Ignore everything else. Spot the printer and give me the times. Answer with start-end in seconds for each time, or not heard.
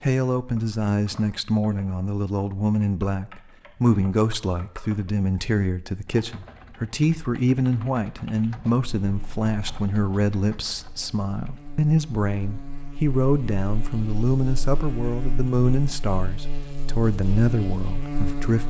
not heard.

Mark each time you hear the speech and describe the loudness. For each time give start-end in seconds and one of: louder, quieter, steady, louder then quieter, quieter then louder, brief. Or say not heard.
0.0-18.6 steady.